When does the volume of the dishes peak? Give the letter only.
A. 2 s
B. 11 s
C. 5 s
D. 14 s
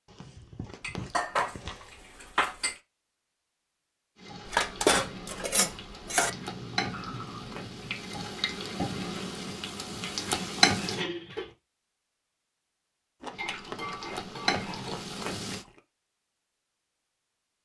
C.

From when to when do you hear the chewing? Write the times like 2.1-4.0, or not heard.
0.1-2.0, 6.2-8.0, 13.2-15.8.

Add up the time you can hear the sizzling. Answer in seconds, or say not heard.
9 s.